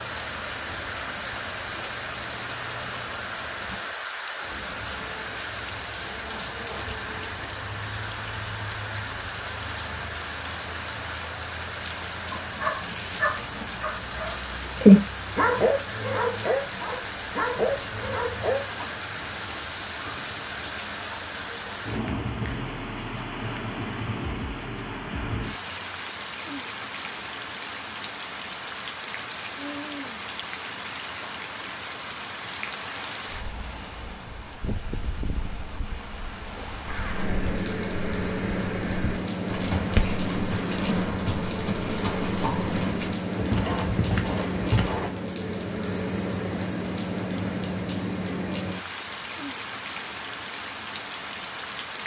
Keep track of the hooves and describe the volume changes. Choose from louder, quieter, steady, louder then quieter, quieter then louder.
louder.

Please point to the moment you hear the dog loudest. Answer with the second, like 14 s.
15 s.